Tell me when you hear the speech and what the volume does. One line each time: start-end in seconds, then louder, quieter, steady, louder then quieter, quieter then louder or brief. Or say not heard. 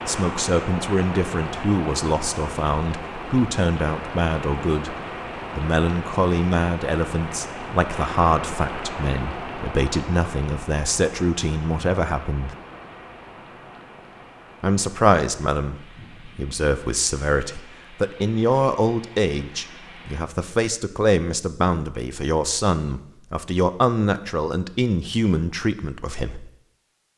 0.1-5.0 steady
5.5-12.6 quieter then louder
14.6-26.5 steady.